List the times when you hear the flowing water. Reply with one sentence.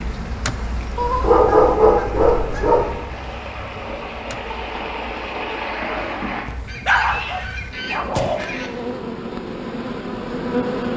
The flowing water can be heard from 0.2 to 6.5 s.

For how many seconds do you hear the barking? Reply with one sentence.
You can hear the barking for 4 seconds altogether.